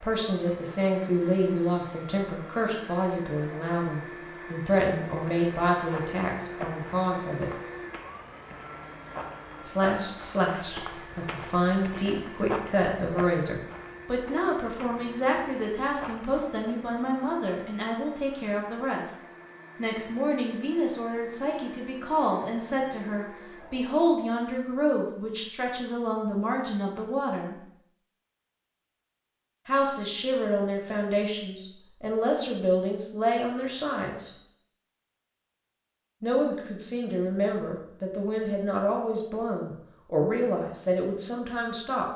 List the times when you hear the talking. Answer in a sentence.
The talking can be heard from 0.0 to 7.5 s, from 9.7 to 19.1 s, from 19.8 to 27.6 s, from 29.6 to 34.3 s and from 36.2 to 42.1 s.